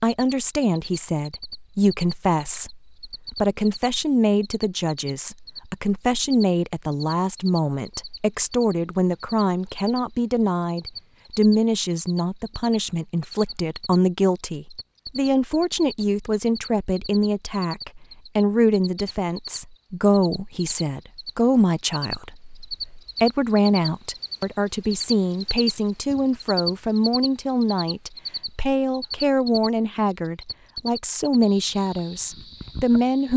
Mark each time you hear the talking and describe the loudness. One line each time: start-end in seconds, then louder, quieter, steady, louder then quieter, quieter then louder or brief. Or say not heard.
0.0-33.3 steady.